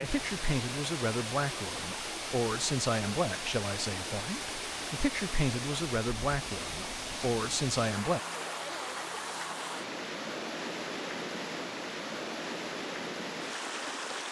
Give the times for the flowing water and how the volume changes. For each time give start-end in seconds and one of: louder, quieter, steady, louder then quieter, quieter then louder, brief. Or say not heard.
0.0-14.2 steady.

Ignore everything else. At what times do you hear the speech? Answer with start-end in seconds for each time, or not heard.
0.0-8.2.